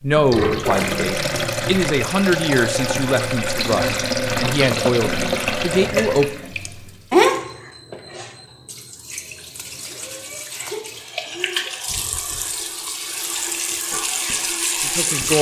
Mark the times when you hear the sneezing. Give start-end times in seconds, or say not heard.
9.8-11.8.